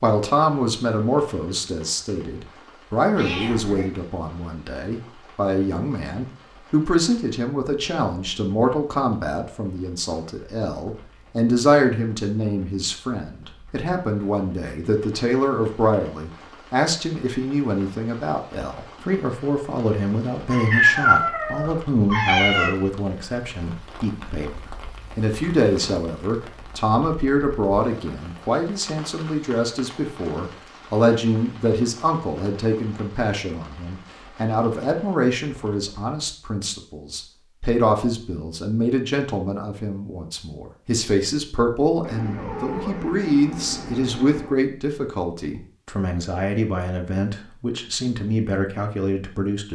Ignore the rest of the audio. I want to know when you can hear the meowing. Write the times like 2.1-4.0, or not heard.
3.1-3.9, 20.5-22.8, 42.0-44.5.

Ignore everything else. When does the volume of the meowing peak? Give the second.
21 s.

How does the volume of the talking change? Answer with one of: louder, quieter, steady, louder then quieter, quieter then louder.
steady.